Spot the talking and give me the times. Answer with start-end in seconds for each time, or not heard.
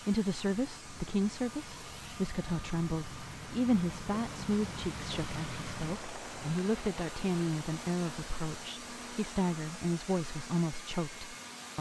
0.1-11.7.